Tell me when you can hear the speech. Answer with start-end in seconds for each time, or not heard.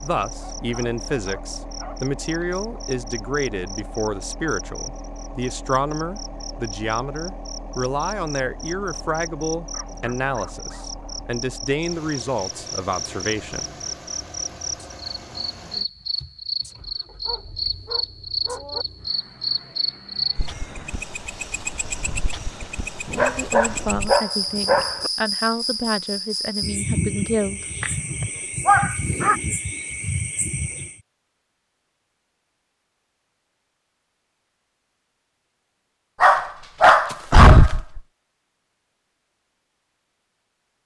0.0-13.7, 23.1-27.6.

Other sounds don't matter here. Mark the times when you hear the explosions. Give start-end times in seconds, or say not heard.
not heard.